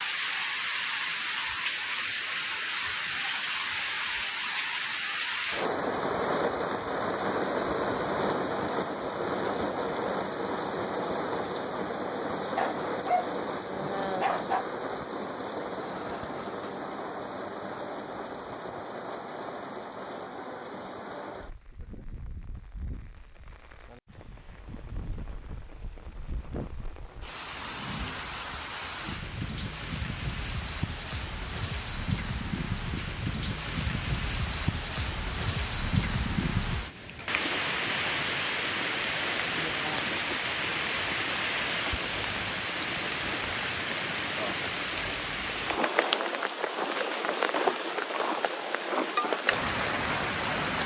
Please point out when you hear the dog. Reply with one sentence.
You can hear the dog from 12.6 to 14.7 s.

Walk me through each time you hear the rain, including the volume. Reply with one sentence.
You can hear the rain from 0.0 to 50.8 s, getting quieter then louder.